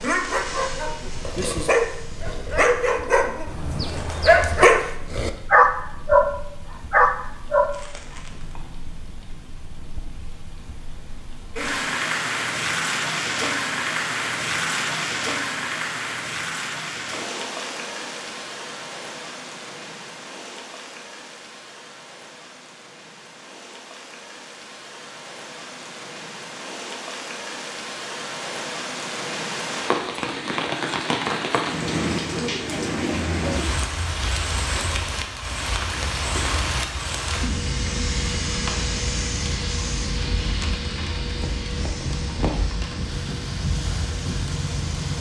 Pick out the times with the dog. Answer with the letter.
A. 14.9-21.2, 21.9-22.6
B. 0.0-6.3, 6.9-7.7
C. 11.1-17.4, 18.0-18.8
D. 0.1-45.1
B.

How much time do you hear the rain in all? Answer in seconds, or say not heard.
45 s.